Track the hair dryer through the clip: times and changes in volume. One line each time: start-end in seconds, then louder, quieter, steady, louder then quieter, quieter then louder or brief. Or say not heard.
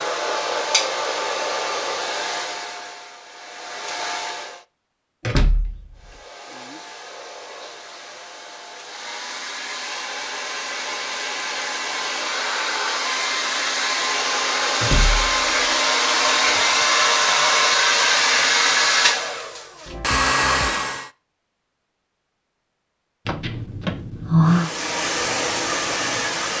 0.0-4.6 quieter then louder
6.0-21.1 louder
24.4-26.5 brief.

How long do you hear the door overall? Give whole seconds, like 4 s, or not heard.
3 s.